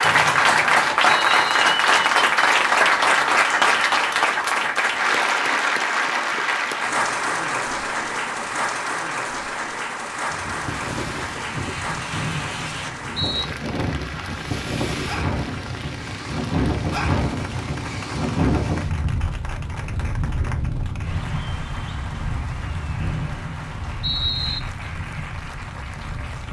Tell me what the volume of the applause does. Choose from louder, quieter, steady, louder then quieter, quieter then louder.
quieter.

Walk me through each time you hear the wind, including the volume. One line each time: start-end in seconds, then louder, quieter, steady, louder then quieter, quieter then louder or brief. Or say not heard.
10.3-26.4 louder then quieter.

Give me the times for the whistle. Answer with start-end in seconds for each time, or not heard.
0.0-1.6, 12.1-13.4, 23.0-24.6.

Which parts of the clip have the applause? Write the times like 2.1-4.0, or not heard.
0.0-26.4.